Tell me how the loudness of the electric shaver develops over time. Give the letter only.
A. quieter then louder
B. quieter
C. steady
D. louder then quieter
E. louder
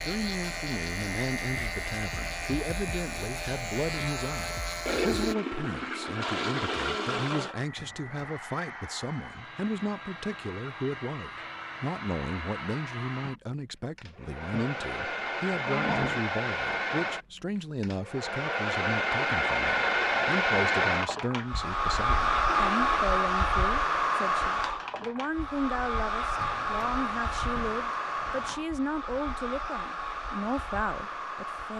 C.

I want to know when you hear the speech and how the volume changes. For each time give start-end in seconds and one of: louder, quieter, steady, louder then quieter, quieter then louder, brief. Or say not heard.
0.0-31.7 steady.